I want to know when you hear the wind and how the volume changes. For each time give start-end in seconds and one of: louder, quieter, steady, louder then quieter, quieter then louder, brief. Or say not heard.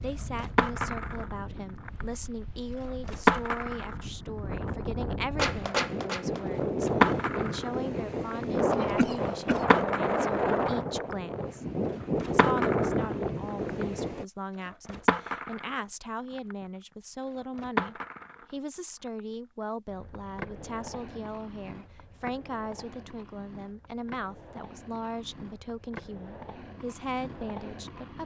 0.0-14.2 louder.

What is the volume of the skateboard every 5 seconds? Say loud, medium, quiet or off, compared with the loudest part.
loud, loud, medium, medium, quiet, quiet.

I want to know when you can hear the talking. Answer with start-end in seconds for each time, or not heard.
0.0-11.7, 12.2-28.2.